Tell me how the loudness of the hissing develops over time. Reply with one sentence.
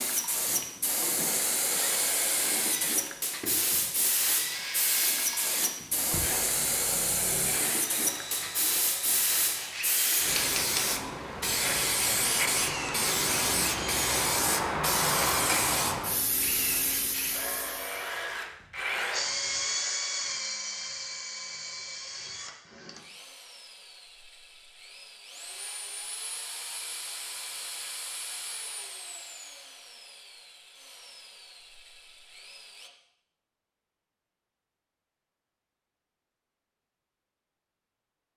The volume of the hissing stays about the same.